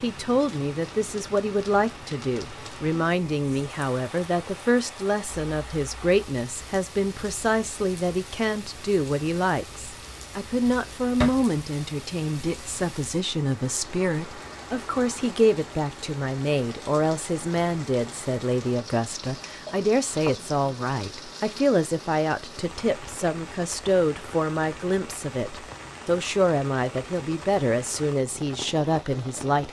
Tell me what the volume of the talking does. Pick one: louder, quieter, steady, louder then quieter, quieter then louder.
steady.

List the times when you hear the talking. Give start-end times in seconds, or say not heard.
0.0-29.6.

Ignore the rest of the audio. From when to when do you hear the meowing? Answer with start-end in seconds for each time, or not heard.
not heard.